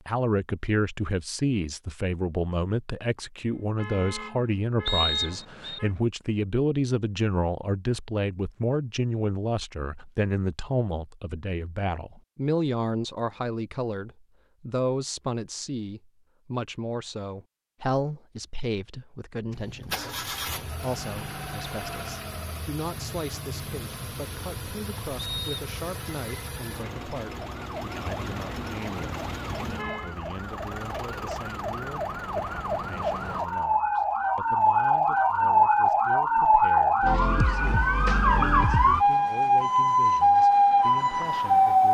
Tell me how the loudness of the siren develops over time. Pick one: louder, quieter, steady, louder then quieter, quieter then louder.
louder.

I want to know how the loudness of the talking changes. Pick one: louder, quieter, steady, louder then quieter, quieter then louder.
quieter.